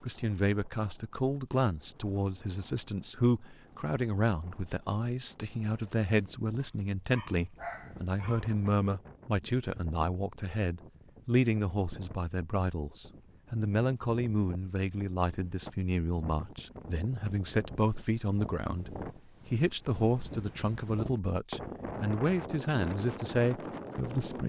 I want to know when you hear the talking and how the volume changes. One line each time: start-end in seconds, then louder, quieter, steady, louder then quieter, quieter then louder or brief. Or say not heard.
0.0-24.4 steady.